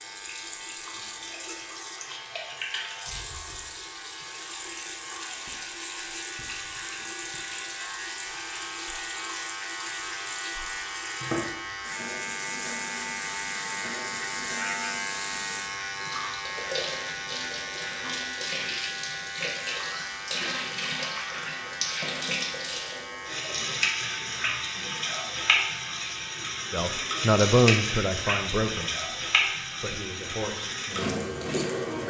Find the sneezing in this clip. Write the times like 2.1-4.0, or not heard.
not heard.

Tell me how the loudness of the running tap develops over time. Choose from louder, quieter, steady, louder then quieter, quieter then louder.
louder.